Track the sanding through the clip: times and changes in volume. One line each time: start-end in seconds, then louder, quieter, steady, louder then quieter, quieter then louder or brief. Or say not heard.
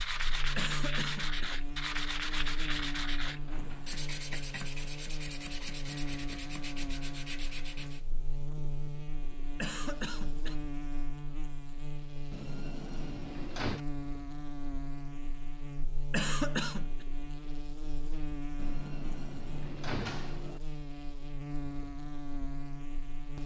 0.0-8.0 quieter.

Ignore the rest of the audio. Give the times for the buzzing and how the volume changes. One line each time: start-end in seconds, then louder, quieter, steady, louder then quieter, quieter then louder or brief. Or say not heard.
0.0-23.4 steady.